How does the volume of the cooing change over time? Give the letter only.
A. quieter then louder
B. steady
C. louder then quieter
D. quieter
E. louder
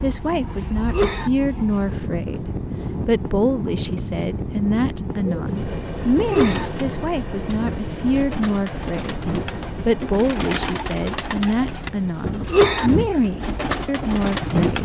E.